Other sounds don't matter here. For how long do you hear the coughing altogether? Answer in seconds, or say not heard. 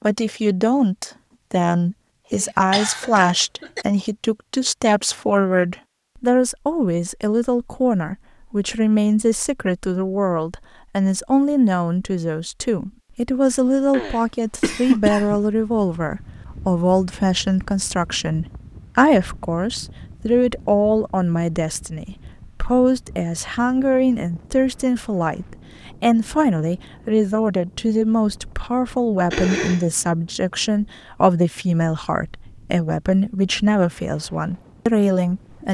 4 s.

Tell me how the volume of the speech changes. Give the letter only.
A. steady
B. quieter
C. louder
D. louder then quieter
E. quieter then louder
A.